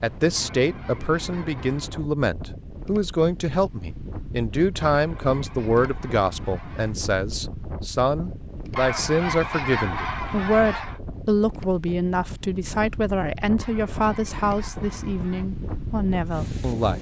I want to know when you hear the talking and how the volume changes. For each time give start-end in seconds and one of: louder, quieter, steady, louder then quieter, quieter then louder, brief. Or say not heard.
0.0-16.9 steady.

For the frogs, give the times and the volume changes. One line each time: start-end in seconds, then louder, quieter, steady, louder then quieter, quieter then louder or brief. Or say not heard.
not heard.